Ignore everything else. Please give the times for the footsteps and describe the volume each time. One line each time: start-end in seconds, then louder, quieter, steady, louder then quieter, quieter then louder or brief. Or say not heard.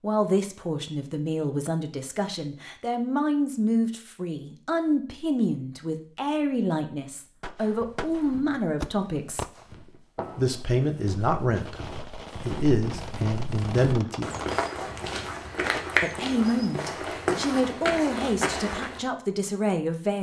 7.7-19.0 louder.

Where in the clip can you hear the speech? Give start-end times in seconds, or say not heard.
0.0-9.4, 10.3-14.3, 16.0-20.1.